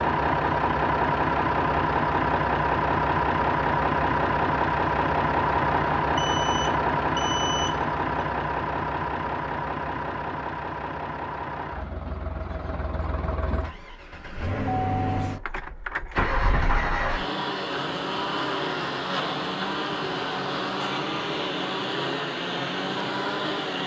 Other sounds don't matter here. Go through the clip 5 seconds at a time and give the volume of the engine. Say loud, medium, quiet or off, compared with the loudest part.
loud, loud, medium, medium, medium.